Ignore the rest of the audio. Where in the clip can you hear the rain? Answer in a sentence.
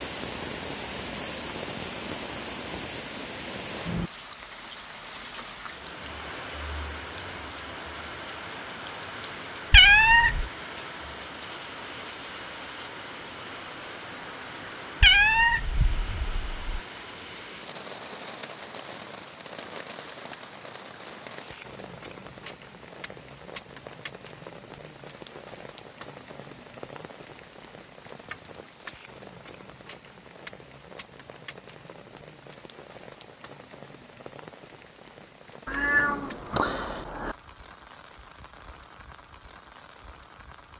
You can hear the rain from 0.0 to 40.7 s.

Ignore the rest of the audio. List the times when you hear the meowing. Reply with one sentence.
The meowing can be heard from 9.7 to 10.4 s, from 15.0 to 16.6 s and from 35.6 to 37.4 s.